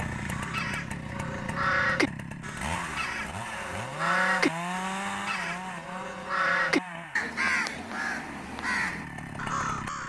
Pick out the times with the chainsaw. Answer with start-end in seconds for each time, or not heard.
0.0-10.0.